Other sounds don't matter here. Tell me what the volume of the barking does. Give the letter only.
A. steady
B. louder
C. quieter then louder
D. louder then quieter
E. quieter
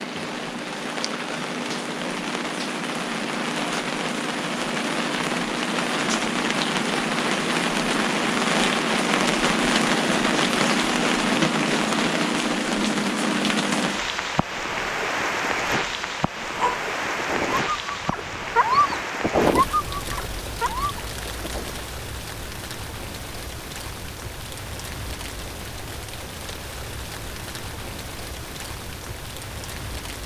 D.